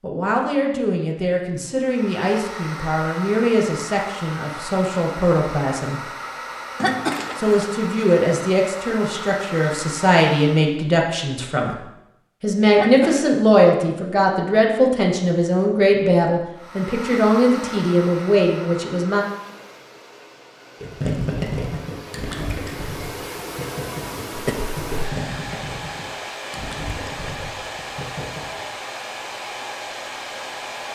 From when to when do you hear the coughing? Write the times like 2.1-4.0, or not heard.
6.8-7.7, 12.8-13.4, 24.3-25.2.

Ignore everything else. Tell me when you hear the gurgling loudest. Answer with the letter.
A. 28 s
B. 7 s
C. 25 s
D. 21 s
D.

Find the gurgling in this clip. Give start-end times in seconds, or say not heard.
20.8-28.6.